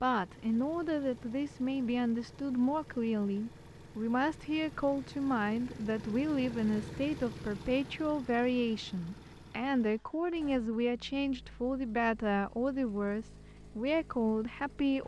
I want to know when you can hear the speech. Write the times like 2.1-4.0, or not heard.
0.0-15.0.